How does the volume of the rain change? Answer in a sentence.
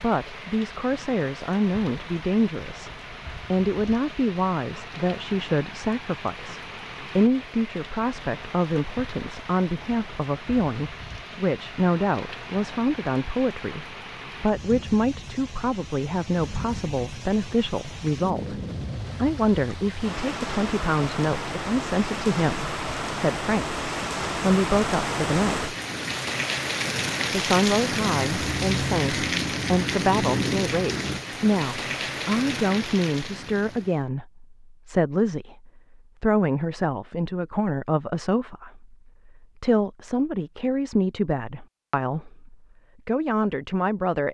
The loudness of the rain goes up.